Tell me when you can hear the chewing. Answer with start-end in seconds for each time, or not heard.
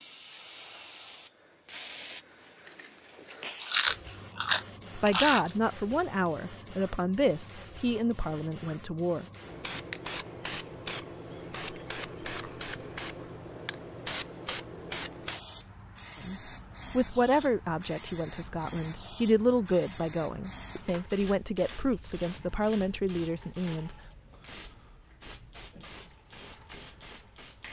3.6-5.5.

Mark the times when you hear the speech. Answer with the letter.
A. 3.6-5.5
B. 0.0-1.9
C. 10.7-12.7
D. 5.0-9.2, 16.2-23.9
D.